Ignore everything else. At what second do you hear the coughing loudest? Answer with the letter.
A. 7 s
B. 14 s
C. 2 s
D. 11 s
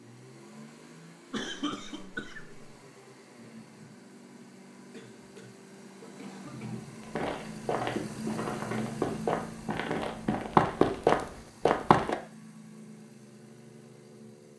C.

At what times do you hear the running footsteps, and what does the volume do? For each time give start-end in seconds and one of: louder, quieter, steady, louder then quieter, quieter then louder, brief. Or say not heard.
7.1-12.2 louder.